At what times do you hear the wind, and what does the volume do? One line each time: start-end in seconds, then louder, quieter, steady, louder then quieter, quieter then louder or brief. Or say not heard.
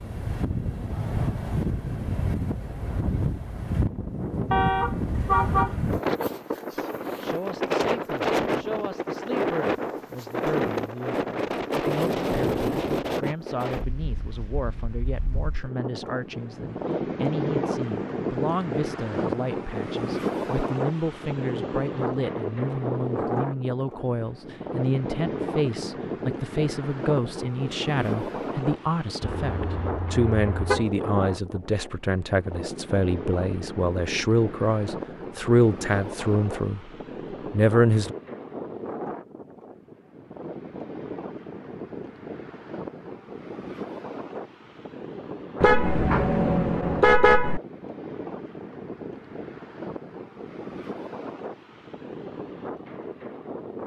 0.0-53.8 quieter.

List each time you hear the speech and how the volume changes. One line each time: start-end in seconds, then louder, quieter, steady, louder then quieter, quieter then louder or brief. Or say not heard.
7.2-36.9 louder
37.5-38.1 brief.